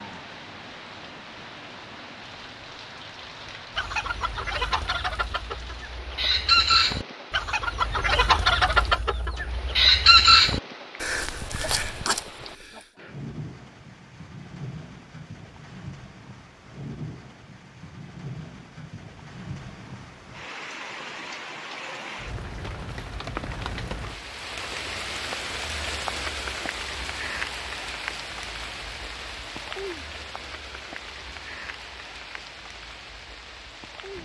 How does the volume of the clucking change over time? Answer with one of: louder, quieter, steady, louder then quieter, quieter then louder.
louder.